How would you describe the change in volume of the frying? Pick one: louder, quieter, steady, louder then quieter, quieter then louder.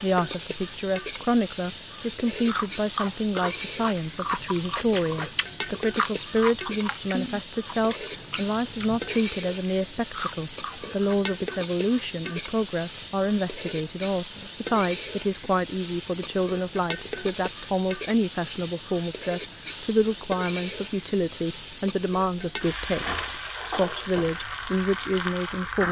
steady.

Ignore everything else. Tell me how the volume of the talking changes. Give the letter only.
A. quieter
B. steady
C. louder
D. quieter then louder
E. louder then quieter
B.